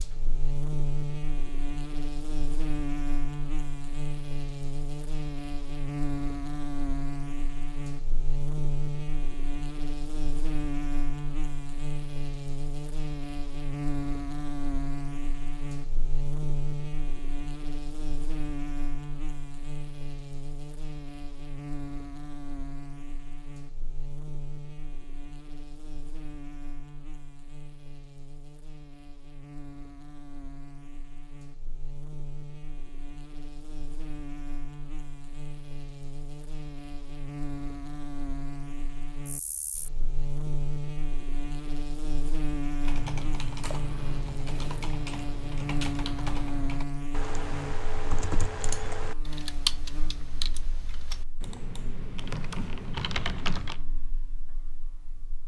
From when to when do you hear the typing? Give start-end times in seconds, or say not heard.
42.9-53.8.